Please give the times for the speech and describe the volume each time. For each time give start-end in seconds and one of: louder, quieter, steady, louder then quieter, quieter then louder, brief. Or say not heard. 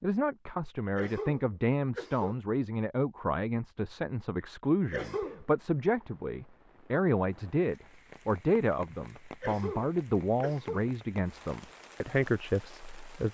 0.0-13.2 steady.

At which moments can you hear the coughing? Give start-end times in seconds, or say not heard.
0.9-2.4, 4.9-5.5, 9.4-10.9.